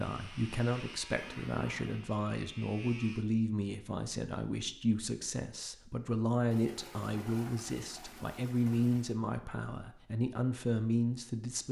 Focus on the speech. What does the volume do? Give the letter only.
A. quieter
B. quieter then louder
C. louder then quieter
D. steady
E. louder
D.